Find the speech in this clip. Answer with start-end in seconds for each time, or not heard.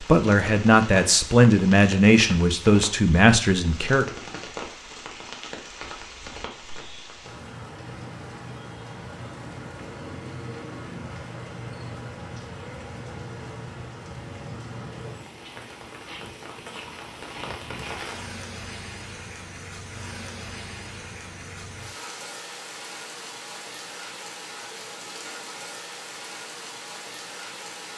0.0-4.0.